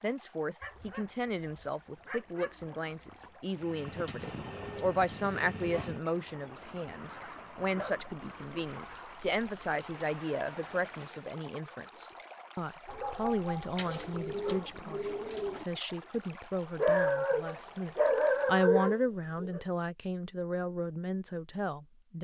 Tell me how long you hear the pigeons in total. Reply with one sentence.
You can hear the pigeons for 4 seconds altogether.